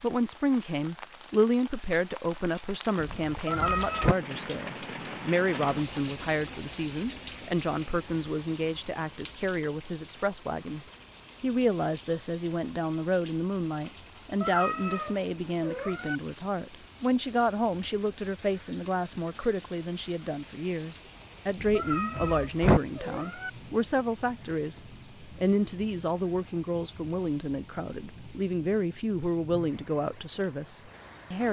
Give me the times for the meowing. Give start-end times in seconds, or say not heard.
3.5-4.1, 14.4-16.2, 21.8-23.5.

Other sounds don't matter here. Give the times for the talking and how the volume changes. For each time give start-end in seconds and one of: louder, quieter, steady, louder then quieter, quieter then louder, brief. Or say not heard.
0.0-31.4 steady.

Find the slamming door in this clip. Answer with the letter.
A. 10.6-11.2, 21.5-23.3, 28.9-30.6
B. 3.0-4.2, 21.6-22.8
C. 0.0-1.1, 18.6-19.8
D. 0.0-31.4
B.